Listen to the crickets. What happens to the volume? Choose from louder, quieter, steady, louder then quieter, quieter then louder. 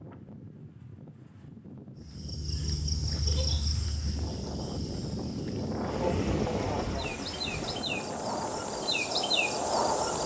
quieter then louder.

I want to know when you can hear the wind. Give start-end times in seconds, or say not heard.
0.0-10.2.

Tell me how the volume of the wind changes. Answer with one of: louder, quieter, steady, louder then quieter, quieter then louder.
louder then quieter.